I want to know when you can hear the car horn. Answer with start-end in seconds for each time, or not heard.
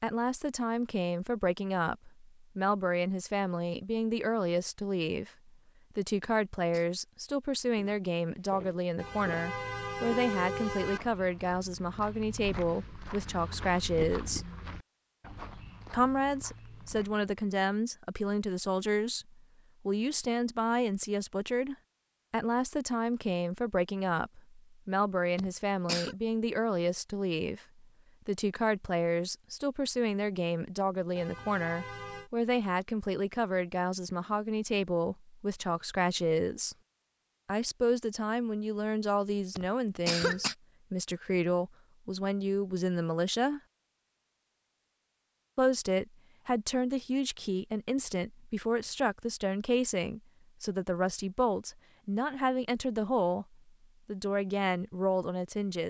8.9-11.0, 31.1-32.3.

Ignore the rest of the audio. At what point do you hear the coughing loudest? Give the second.
40 s.